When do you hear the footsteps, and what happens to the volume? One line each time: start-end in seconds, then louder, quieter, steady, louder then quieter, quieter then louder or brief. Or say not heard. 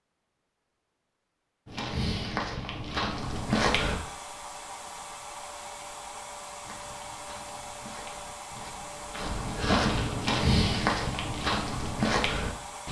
1.6-4.0 brief
6.6-12.8 louder.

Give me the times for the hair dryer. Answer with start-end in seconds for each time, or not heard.
3.2-12.8.